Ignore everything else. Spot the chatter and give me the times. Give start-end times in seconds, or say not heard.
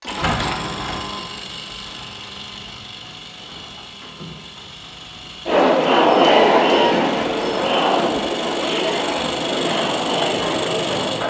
5.5-11.2.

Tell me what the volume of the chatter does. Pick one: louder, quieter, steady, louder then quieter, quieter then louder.
quieter.